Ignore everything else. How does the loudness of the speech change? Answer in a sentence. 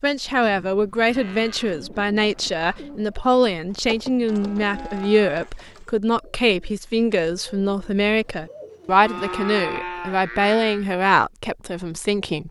The volume of the speech stays about the same.